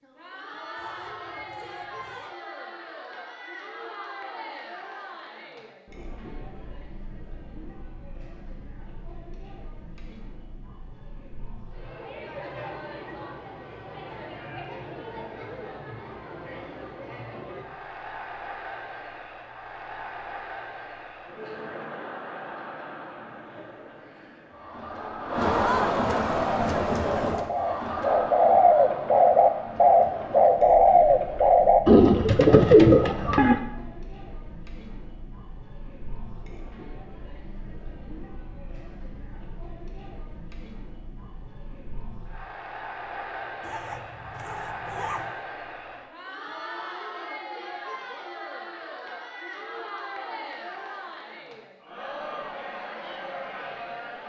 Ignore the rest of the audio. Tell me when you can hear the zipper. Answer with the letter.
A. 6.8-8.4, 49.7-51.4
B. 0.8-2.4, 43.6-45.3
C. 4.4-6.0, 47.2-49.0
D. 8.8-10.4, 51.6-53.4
B.